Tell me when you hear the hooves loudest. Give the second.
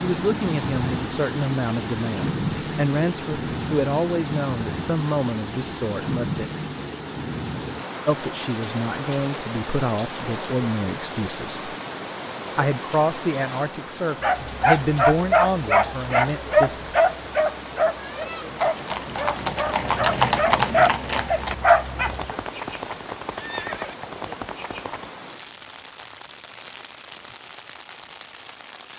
20 s.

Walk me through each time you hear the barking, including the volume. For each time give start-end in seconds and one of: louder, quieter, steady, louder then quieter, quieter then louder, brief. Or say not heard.
14.2-22.4 quieter then louder.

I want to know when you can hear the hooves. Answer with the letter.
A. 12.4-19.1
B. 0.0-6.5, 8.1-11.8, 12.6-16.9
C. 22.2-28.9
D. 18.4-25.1
D.